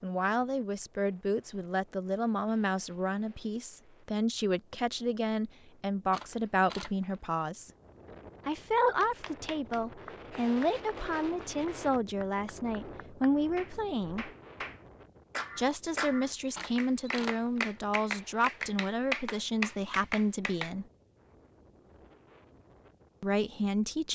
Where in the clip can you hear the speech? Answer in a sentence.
The speech can be heard from 0.0 to 7.7 s, from 8.4 to 14.3 s, from 15.6 to 20.9 s and from 23.2 to 24.1 s.